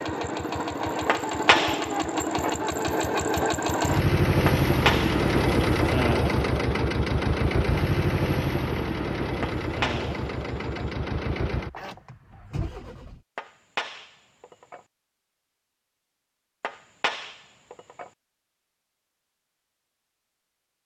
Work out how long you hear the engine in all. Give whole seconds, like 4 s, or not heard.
13 s.